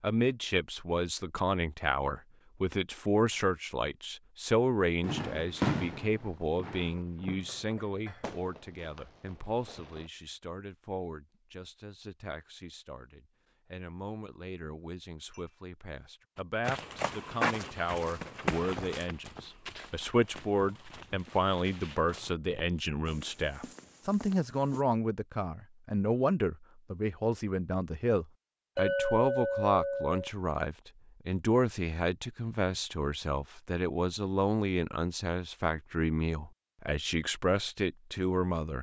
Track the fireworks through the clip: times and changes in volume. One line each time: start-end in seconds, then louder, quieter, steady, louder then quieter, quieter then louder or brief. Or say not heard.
5.0-10.1 quieter.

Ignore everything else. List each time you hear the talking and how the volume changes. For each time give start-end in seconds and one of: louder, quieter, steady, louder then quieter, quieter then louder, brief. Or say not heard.
0.0-38.7 quieter then louder.